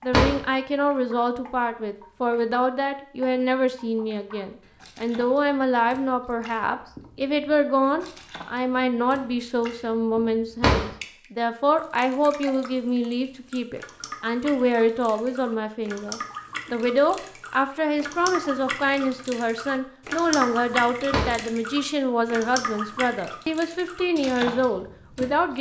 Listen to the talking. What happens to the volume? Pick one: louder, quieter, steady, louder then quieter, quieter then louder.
steady.